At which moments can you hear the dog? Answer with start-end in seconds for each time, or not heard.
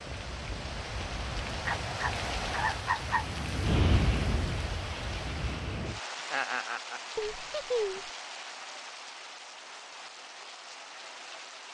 1.6-3.2.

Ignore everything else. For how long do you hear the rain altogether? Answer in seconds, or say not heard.
12 s.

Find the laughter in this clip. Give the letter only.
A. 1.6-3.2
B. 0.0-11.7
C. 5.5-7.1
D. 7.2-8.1
D.